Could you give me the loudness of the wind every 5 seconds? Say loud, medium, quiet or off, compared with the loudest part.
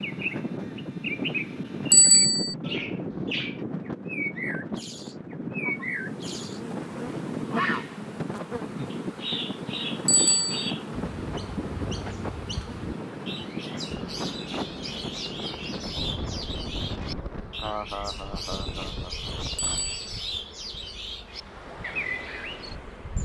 loud, loud, loud, medium, medium.